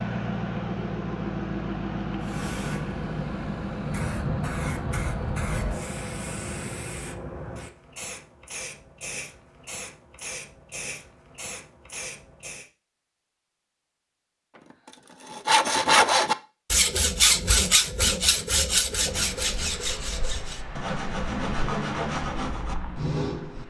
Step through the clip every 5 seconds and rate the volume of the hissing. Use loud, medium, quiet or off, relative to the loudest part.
loud, loud, medium, off, off.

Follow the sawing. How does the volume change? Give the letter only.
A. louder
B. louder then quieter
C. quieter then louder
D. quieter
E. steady
D.